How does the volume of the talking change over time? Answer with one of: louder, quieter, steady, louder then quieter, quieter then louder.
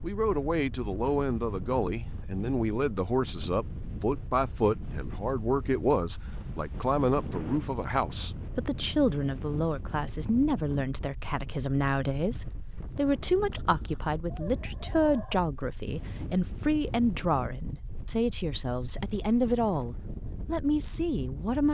steady.